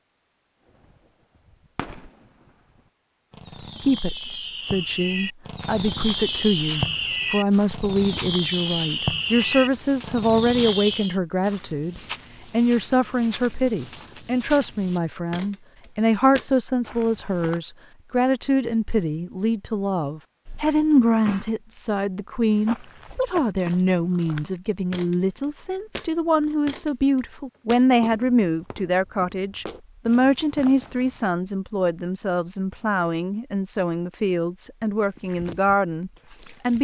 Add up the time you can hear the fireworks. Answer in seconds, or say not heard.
10 s.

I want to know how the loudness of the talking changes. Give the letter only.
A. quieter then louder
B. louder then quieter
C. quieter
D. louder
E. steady
E.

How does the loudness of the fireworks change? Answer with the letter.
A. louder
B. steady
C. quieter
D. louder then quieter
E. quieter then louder
A.